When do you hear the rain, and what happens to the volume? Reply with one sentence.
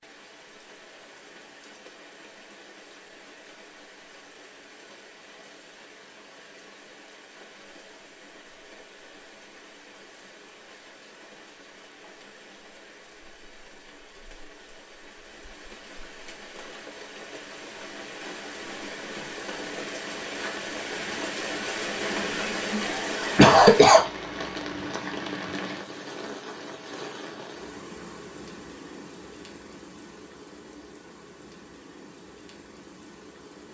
The rain can be heard from 0.0 to 33.7 s, getting louder then quieter.